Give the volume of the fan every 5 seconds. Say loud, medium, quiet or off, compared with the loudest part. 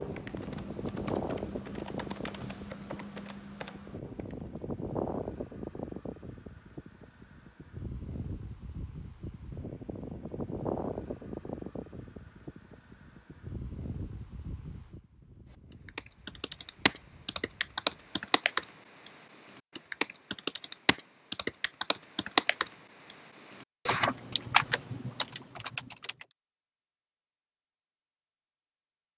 loud, loud, loud, quiet, off, off.